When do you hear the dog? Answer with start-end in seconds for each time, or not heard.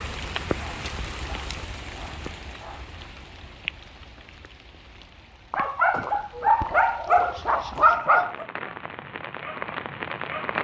0.6-2.9, 5.5-8.4.